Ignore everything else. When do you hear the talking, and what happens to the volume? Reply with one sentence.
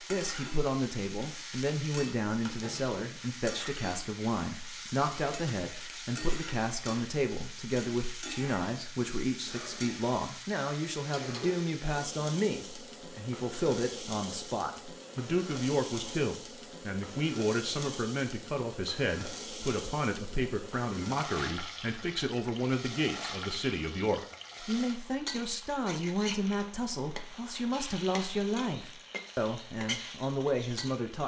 The talking can be heard from 0.1 to 31.2 s, at a steady volume.